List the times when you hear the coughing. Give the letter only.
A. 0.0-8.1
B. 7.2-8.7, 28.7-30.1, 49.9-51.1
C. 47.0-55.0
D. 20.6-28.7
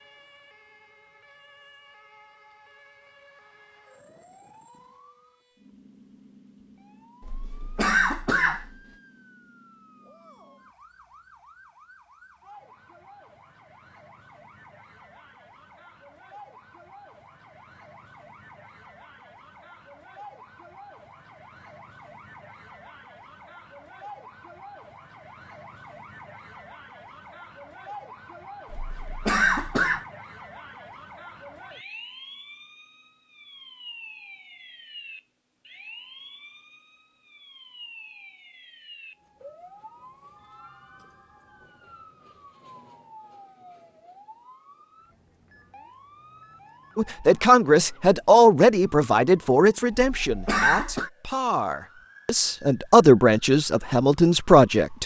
B.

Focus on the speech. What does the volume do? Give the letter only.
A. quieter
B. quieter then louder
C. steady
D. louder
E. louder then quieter
B.